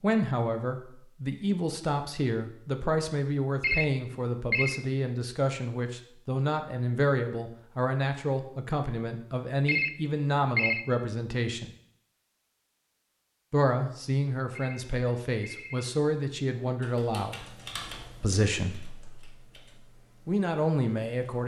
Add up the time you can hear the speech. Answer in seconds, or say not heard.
18 s.